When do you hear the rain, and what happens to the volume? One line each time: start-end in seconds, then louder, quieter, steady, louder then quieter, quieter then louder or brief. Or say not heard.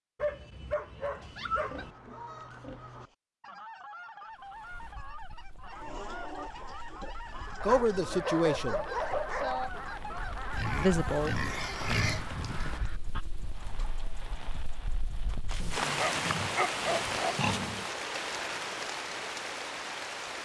4.3-20.3 louder.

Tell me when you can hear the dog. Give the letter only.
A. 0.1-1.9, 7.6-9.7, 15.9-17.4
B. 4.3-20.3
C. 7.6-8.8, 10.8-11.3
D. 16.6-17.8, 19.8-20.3
A.